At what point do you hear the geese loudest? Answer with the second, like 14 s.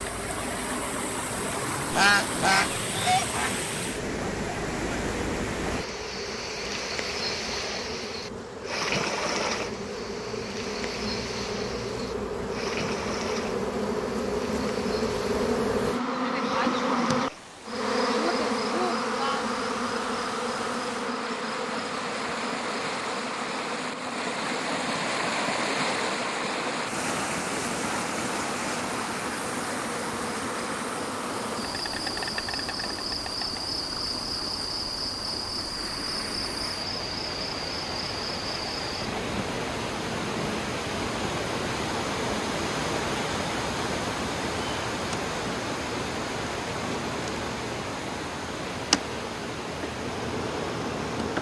2 s.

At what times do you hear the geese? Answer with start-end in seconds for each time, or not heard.
1.9-3.6.